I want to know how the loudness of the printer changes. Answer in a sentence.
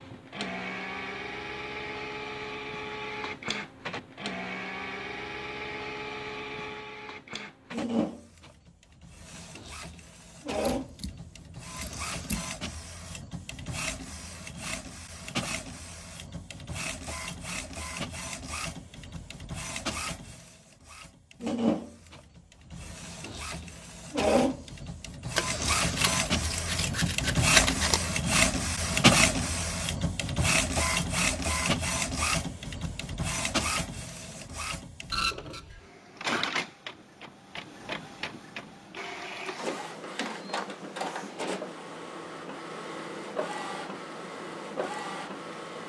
The loudness of the printer goes up, then down.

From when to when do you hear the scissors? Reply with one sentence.
The scissors can be heard from 10.6 to 12.5 s and from 25.4 to 28.0 s.